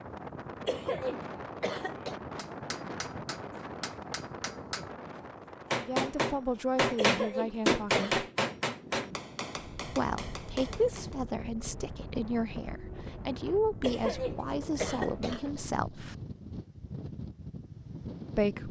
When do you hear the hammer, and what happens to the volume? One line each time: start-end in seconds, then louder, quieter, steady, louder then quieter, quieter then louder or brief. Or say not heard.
2.4-11.2 louder then quieter.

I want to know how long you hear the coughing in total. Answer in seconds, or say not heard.
5 s.